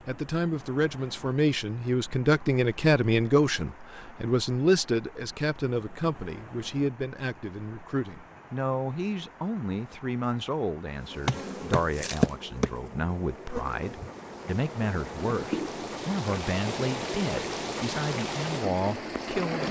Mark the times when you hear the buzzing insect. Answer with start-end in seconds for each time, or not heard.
11.0-15.8.